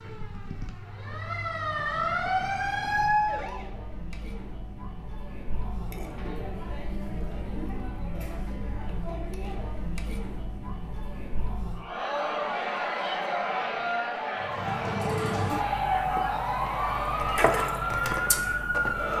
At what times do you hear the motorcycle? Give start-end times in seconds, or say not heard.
not heard.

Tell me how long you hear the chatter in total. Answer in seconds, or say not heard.
16 s.